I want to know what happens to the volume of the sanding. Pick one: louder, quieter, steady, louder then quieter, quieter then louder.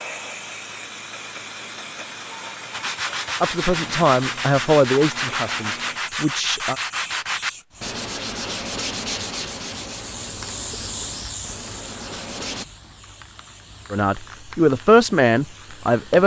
quieter.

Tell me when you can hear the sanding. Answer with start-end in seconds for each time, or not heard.
2.7-12.7.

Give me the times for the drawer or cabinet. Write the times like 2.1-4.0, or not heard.
not heard.